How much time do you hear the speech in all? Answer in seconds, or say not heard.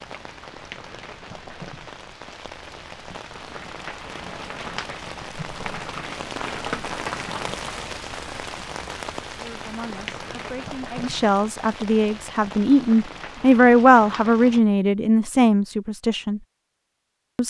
7 s.